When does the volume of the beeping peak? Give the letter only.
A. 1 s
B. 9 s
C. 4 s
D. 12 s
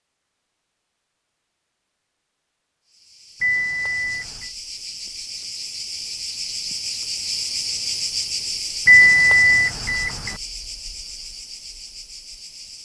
B.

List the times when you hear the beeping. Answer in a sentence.
The beeping can be heard from 3.4 to 4.5 s and from 8.8 to 10.3 s.